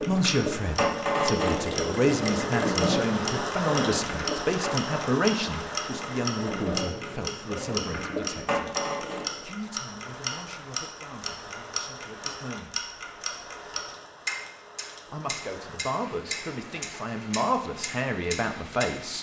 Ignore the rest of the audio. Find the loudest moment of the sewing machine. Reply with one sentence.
The volume of the sewing machine peaks at 1 second.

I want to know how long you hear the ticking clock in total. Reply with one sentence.
The ticking clock can be heard for 19 seconds in total.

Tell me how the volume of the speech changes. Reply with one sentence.
The loudness of the speech goes down, then up.